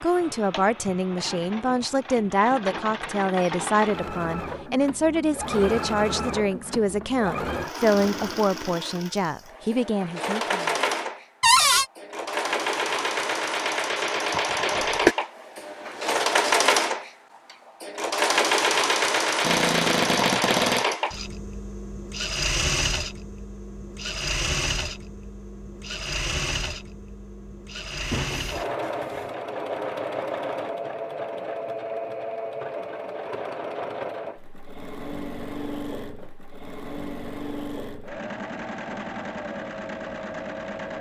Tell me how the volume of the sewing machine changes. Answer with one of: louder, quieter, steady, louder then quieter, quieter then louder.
louder then quieter.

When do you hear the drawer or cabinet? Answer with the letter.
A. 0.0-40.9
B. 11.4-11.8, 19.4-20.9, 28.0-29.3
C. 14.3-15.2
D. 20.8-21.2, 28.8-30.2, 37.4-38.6
B.